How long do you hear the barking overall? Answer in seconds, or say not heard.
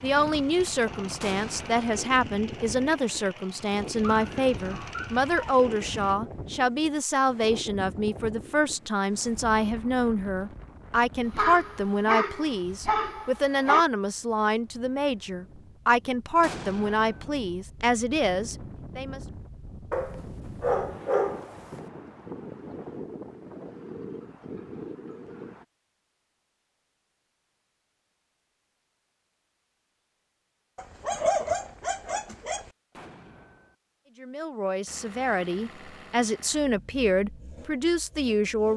8 s.